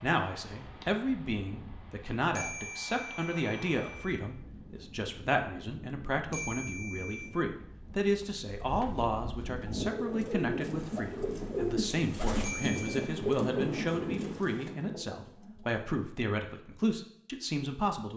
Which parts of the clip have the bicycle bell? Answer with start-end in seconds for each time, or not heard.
2.4-4.2, 6.3-7.3, 12.4-13.1.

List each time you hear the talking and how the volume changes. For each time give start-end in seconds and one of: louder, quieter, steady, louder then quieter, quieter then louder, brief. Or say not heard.
0.0-18.1 steady.